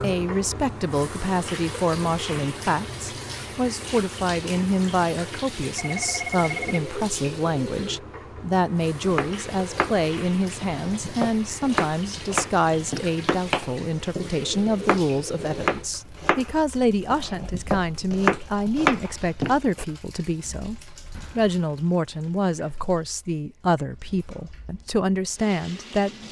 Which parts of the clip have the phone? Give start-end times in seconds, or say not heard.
5.8-6.8, 21.1-21.6.